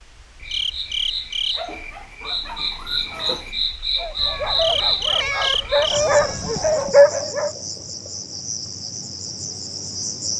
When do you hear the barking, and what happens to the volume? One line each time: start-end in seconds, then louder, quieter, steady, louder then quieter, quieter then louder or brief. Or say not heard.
1.6-7.5 louder.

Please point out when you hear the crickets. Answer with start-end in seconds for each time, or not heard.
0.0-10.3.